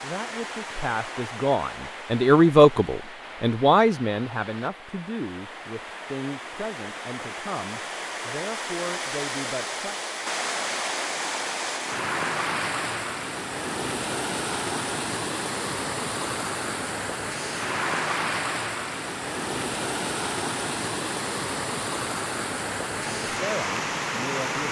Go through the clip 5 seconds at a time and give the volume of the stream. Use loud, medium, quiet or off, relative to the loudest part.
medium, medium, loud, loud, loud.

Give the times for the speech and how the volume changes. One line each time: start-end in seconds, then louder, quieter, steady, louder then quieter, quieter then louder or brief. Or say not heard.
0.0-10.0 louder then quieter
23.0-24.6 brief.